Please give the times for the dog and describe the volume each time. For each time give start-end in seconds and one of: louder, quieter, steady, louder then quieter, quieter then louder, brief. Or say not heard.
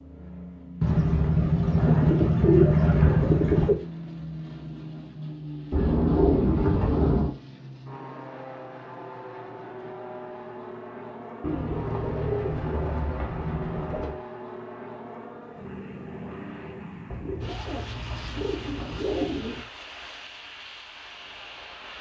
not heard.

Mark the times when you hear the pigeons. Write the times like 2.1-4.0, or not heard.
0.8-3.8, 5.7-7.3, 11.4-14.2, 17.1-19.6.